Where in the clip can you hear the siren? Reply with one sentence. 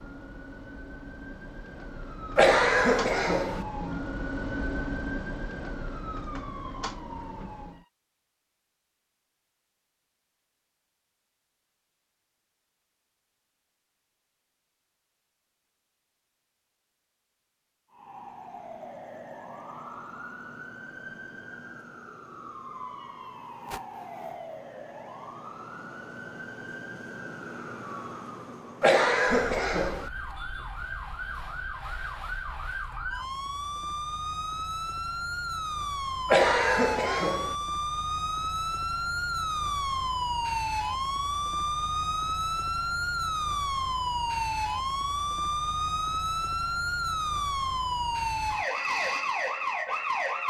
The siren can be heard from 0.0 to 7.8 s and from 17.9 to 50.4 s.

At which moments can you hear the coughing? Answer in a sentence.
You can hear the coughing from 2.4 to 3.6 s, from 28.8 to 30.1 s and from 36.2 to 37.5 s.